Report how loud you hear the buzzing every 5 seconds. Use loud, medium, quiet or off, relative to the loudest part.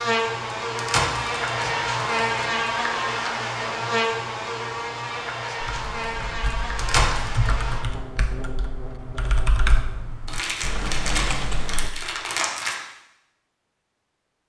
loud, medium, off.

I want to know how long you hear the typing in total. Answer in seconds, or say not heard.
6 s.